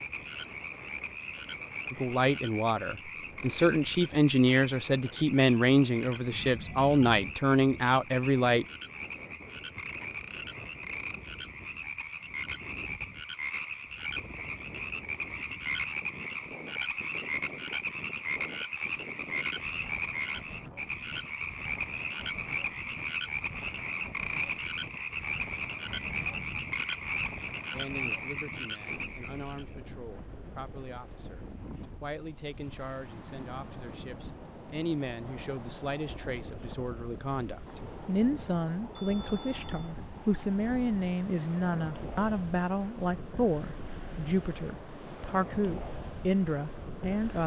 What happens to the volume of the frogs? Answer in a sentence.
The loudness of the frogs goes up.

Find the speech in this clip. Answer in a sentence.
The speech can be heard from 1.9 to 8.7 s and from 27.7 to 47.4 s.